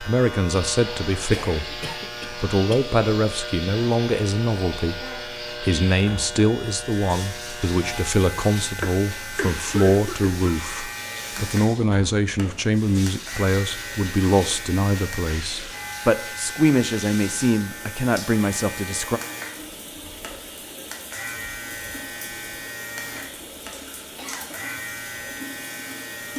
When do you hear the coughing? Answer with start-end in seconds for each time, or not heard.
1.3-2.9, 8.8-10.3, 24.1-24.6.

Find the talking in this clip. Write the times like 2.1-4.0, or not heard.
0.0-19.2.